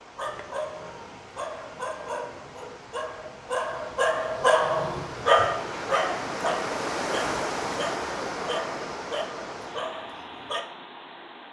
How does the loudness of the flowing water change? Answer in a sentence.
The loudness of the flowing water goes up, then down.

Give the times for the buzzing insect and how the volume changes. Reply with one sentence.
The buzzing insect can't be heard in this clip.